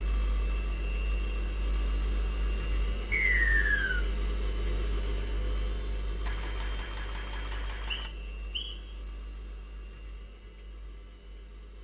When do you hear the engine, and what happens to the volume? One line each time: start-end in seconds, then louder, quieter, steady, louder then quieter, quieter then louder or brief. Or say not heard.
0.0-11.7 quieter.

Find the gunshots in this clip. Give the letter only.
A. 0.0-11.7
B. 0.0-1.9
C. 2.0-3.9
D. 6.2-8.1
D.